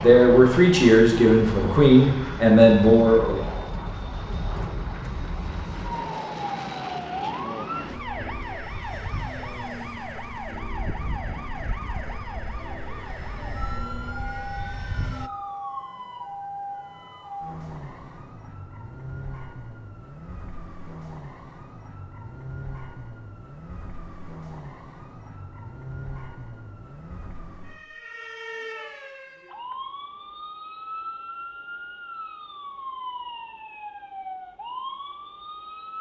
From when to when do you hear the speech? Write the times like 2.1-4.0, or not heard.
0.0-3.5.